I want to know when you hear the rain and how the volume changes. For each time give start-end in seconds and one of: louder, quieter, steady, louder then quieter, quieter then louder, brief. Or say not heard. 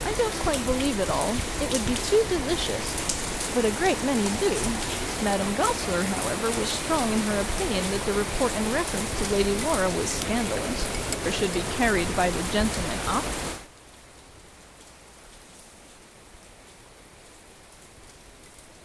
0.0-18.7 quieter.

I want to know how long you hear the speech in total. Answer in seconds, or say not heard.
13 s.